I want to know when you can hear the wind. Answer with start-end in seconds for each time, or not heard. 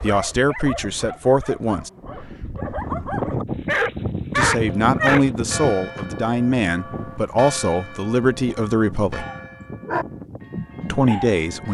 1.9-11.6.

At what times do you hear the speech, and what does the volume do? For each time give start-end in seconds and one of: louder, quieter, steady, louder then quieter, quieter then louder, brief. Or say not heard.
0.0-1.9 brief
4.3-9.2 steady
10.9-11.6 brief.